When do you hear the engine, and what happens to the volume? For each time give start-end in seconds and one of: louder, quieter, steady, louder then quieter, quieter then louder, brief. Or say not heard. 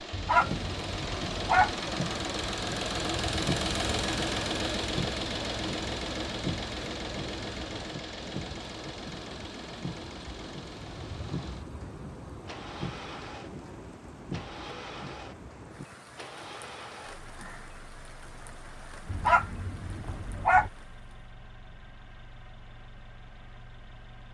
0.0-24.2 quieter.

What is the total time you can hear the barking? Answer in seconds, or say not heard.
3 s.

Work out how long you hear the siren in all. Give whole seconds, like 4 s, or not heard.
not heard.